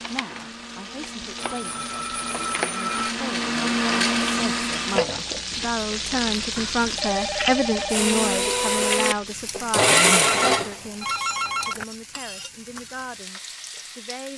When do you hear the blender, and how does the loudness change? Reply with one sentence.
The blender can be heard from 0.0 to 5.1 s, getting louder; and briefly from 7.8 to 10.8 s.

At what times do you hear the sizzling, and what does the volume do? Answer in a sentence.
The sizzling can be heard from 0.0 to 14.3 s, getting louder then quieter.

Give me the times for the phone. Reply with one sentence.
You can hear the phone from 1.4 to 3.1 s, from 6.5 to 8.1 s and from 10.1 to 11.8 s.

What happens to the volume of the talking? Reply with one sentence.
The volume of the talking goes up, then down.